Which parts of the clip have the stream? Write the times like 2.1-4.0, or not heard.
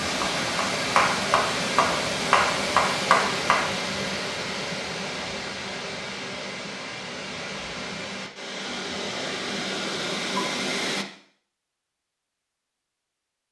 0.0-11.1.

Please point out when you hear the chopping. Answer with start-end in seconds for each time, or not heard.
0.1-3.7.